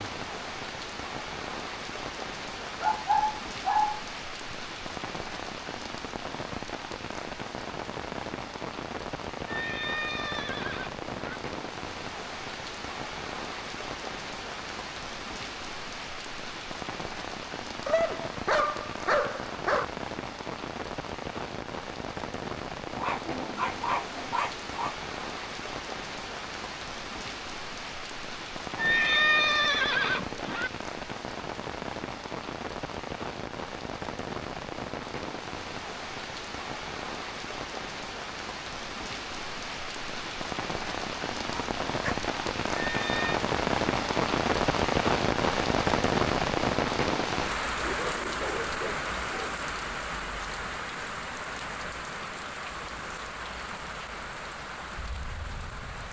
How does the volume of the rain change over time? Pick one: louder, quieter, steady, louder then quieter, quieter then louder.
louder.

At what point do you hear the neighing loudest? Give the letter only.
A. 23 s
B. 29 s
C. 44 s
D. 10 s
B.